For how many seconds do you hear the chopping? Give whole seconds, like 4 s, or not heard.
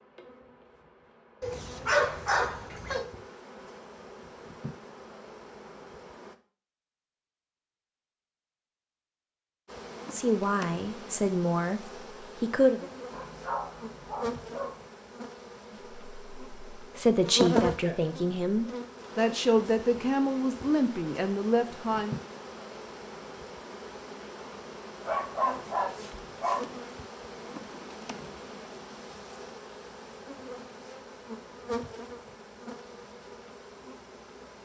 not heard.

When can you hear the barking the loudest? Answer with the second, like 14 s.
2 s.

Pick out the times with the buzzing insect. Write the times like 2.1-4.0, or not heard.
0.0-6.3, 9.7-34.5.